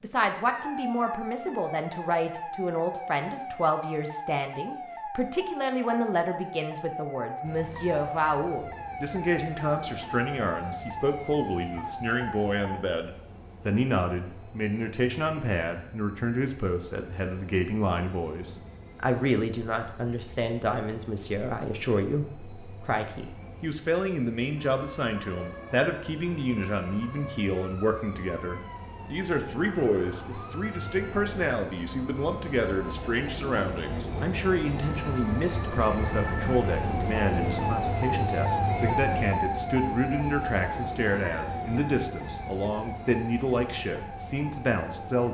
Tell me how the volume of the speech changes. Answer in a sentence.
The volume of the speech stays about the same.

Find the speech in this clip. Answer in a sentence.
You can hear the speech from 0.0 to 45.2 s.